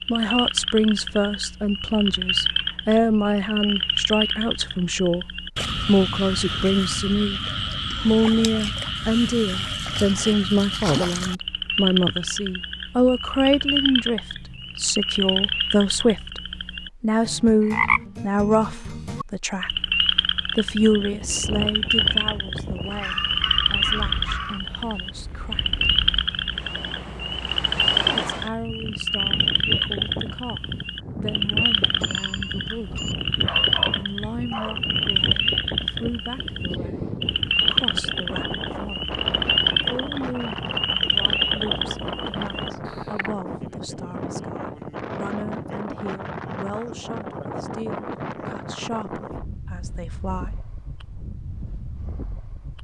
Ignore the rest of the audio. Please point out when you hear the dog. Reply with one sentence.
The dog can be heard from 22.9 to 24.6 s and from 33.4 to 34.8 s.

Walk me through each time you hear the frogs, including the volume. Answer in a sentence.
You can hear the frogs from 0.0 to 43.3 s, at a steady volume.